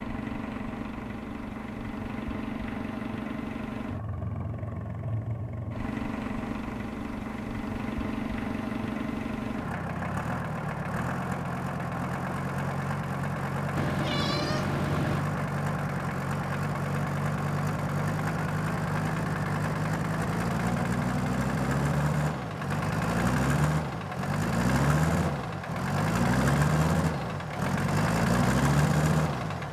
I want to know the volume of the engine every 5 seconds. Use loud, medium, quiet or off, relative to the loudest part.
medium, medium, medium, loud, loud, loud.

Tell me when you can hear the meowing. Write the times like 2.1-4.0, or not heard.
13.8-15.2.